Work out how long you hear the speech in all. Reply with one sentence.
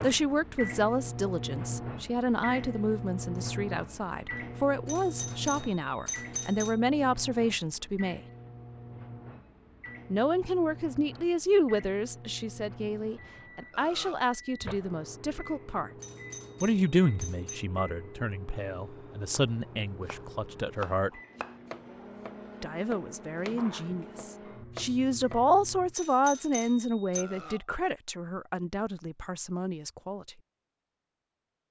You can hear the speech for 26 seconds altogether.